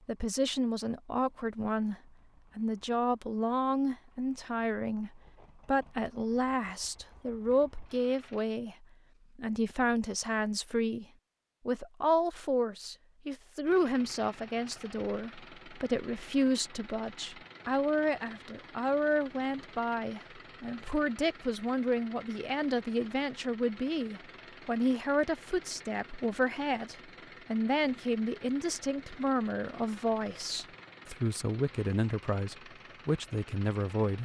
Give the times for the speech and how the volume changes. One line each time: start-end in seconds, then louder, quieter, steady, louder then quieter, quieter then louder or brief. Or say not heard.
0.1-1.9 brief
2.5-11.1 steady
11.7-34.2 steady.